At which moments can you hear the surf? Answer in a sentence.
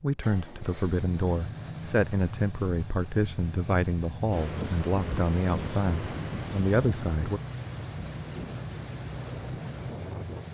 You can hear the surf from 4.3 to 10.4 s.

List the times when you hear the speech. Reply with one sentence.
The speech can be heard from 0.0 to 7.4 s.